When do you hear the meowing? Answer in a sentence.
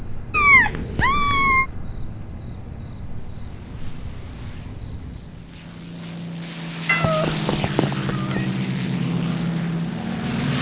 You can hear the meowing from 0.3 to 1.6 s and from 6.8 to 8.4 s.